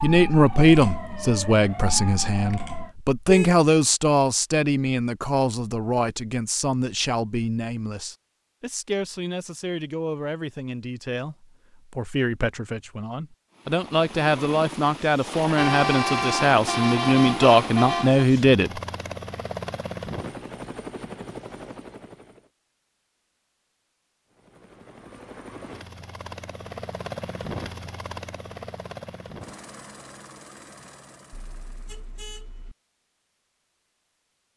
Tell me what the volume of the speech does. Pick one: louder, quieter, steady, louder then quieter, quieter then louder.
quieter then louder.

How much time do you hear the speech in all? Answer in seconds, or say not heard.
19 s.